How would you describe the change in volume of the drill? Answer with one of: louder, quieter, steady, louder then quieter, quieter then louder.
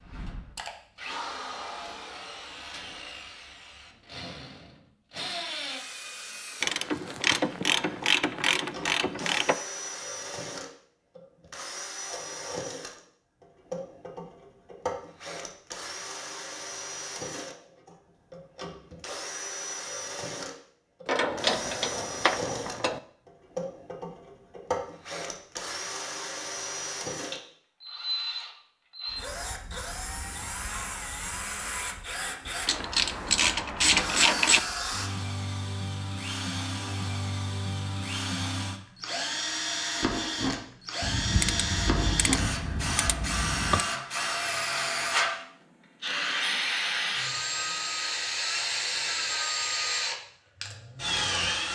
louder.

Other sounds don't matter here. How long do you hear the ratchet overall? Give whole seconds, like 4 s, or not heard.
10 s.